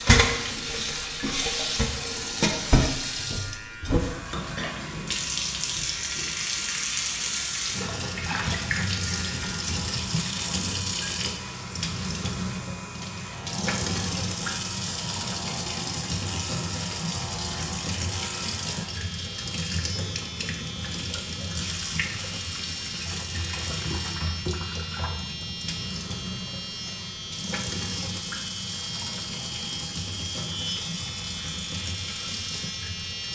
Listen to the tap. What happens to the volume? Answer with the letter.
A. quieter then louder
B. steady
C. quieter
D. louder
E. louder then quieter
C.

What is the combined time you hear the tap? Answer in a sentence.
You can hear the tap for 33 seconds altogether.